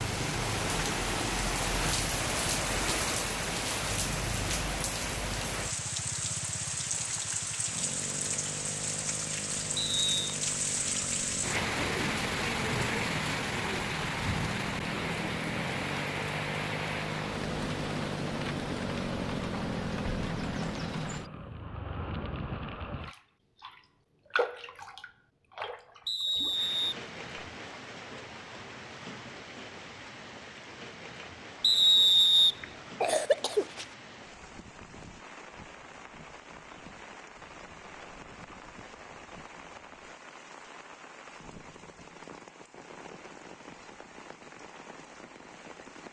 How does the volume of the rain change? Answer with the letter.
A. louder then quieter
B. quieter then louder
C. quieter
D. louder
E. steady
C.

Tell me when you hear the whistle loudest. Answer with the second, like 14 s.
32 s.